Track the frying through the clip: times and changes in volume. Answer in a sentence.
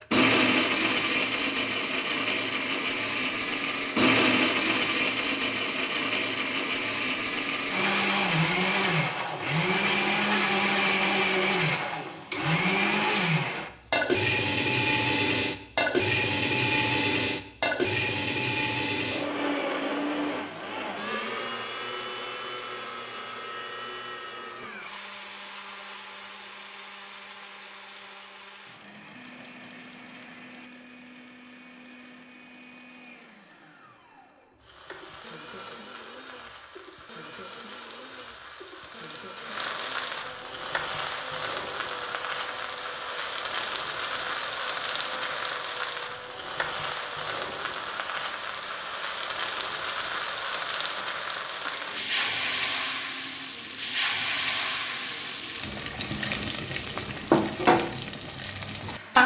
The frying can be heard from 34.6 to 59.2 s, getting louder.